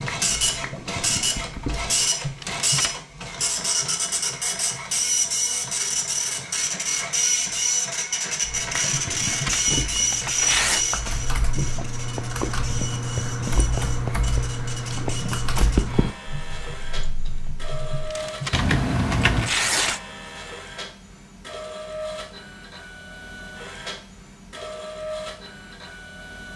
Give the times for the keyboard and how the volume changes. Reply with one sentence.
The keyboard can be heard briefly from 0.0 to 2.1 s; and from 8.4 to 19.5 s, getting louder.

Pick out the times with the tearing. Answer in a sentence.
You can hear the tearing from 2.2 to 3.0 s, from 8.9 to 10.8 s and from 17.9 to 20.0 s.